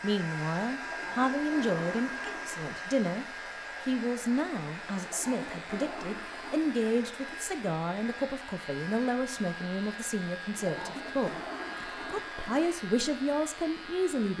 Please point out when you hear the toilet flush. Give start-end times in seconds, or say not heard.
0.8-2.8, 5.0-6.6, 10.6-12.8.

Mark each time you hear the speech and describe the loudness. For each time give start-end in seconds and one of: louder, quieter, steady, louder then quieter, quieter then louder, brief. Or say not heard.
0.0-14.3 steady.